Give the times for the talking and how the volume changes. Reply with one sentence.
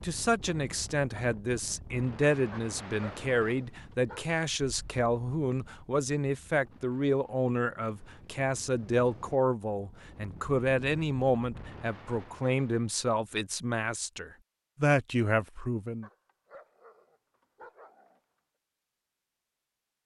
You can hear the talking from 0.0 to 16.1 s, at a steady volume.